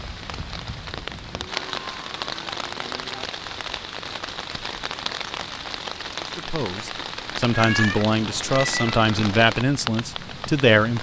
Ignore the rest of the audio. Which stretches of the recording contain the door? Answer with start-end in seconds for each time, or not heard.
not heard.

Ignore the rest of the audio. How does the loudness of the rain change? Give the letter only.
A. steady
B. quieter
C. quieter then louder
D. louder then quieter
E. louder
A.